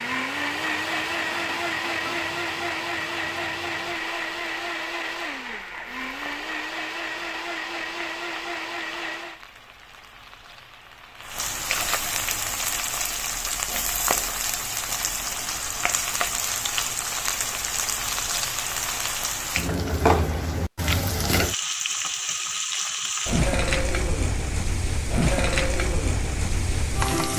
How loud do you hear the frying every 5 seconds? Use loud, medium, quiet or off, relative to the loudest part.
quiet, quiet, loud, loud, loud, loud.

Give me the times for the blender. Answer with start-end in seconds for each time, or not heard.
0.0-9.4.